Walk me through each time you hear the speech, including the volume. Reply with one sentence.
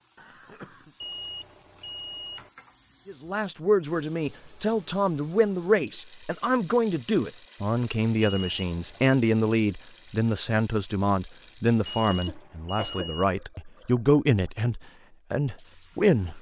You can hear the speech from 3.0 to 16.3 s, at a steady volume.